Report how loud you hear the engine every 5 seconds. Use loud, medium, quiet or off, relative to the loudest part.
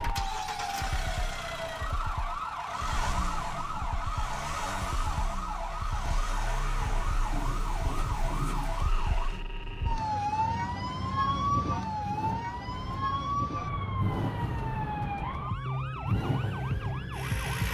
loud, medium, loud, loud.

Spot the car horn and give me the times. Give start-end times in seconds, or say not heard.
7.3-8.9.